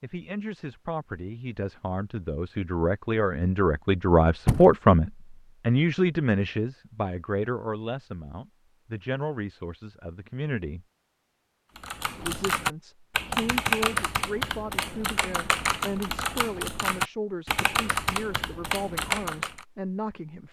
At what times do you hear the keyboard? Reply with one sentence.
The keyboard can be heard from 11.8 to 19.6 s.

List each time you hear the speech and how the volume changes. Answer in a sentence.
The speech can be heard from 0.0 to 10.8 s, getting louder then quieter; and from 12.2 to 20.4 s, at a steady volume.